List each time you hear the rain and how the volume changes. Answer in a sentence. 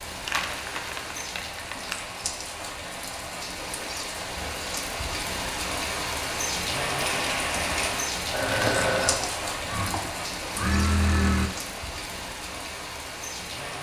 The rain can be heard from 0.0 to 13.7 s, getting louder then quieter.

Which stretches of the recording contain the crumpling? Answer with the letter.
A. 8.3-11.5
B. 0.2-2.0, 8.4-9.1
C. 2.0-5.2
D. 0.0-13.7
B.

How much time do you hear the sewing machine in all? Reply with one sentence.
You can hear the sewing machine for 3 seconds altogether.